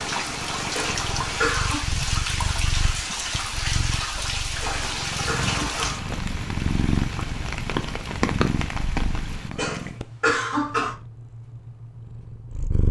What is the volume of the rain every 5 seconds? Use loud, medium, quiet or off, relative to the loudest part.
loud, loud, off.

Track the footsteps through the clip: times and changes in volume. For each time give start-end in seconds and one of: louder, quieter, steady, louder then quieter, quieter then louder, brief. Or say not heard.
not heard.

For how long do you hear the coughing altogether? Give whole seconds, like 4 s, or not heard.
4 s.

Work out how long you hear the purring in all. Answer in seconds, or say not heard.
13 s.